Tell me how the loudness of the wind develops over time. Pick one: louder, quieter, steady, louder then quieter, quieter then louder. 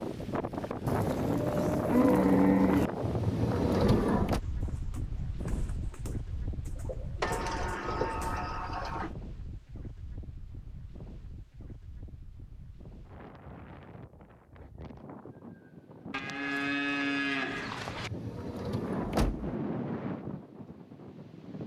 quieter then louder.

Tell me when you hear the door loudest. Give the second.
4 s.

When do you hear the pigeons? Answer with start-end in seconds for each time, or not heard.
4.2-8.4.